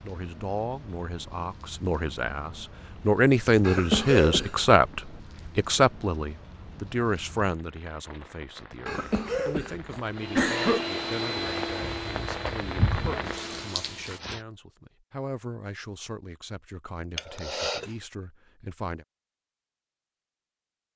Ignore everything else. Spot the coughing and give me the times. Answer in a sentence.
The coughing can be heard from 3.6 to 4.7 s, from 8.8 to 10.8 s and from 17.1 to 17.9 s.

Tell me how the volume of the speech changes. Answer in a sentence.
The volume of the speech goes down.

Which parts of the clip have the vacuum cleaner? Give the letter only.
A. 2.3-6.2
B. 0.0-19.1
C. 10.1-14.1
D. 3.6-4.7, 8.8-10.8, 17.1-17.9
C.